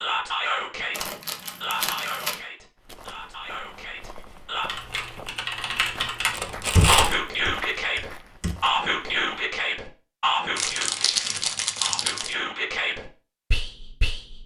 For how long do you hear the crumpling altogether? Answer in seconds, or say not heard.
4 s.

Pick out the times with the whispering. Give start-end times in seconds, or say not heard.
0.0-4.7, 6.8-14.4.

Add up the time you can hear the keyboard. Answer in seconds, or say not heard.
4 s.